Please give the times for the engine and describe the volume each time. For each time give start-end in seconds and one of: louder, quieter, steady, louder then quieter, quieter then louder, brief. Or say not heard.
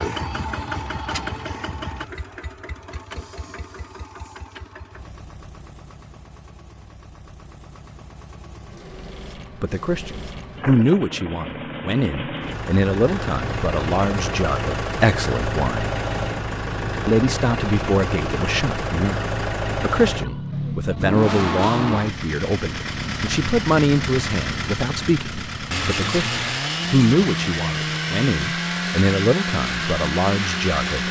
0.0-31.0 louder.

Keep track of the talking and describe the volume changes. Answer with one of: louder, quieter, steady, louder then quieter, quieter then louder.
steady.